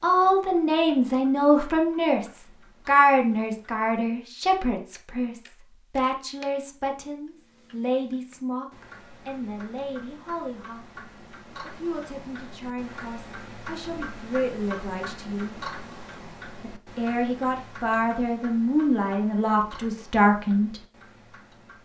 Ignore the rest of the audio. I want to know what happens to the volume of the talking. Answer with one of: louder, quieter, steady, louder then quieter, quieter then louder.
quieter then louder.